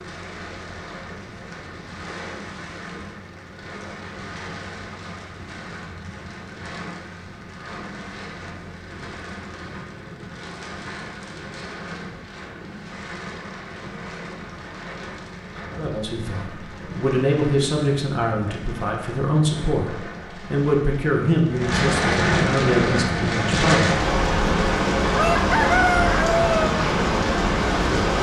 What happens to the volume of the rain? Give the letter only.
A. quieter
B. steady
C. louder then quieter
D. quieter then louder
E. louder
E.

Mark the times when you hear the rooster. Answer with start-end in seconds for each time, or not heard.
25.1-26.8.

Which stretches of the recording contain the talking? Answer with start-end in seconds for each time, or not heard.
15.8-24.0.